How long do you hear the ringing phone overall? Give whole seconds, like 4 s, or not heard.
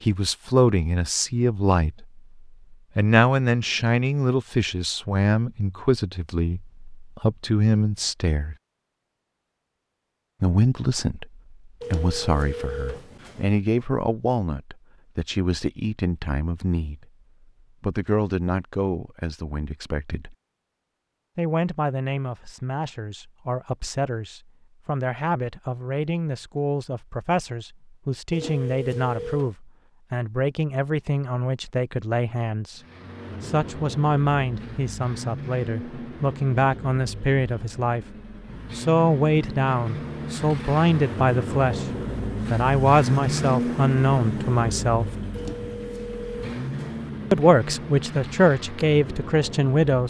5 s.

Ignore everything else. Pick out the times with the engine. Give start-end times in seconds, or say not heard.
32.8-50.0.